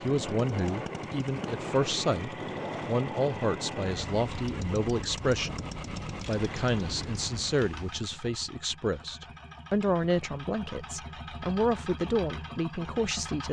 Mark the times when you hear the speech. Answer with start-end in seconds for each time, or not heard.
0.0-5.6, 6.2-13.4.